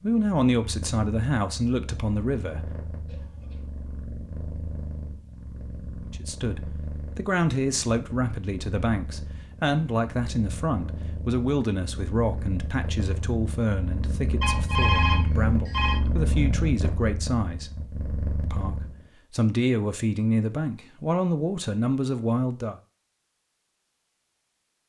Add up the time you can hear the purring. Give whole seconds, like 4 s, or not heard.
19 s.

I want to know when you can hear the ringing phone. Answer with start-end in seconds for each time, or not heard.
14.4-16.0.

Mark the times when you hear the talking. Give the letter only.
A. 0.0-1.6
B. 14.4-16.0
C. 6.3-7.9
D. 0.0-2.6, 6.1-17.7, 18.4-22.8
D.